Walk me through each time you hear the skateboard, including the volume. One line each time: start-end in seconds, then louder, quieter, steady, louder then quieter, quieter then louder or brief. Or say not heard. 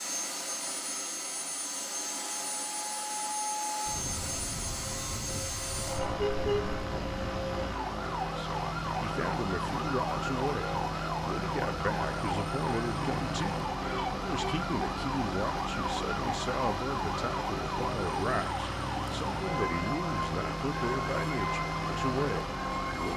not heard.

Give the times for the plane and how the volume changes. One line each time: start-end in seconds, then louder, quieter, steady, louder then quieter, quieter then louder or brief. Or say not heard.
0.0-23.1 steady.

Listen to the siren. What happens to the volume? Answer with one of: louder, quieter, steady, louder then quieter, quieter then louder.
steady.